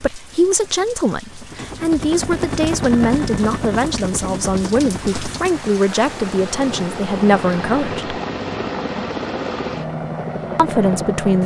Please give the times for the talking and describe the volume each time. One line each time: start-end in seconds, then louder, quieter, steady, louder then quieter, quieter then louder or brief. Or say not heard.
0.0-8.2 steady
10.6-11.4 brief.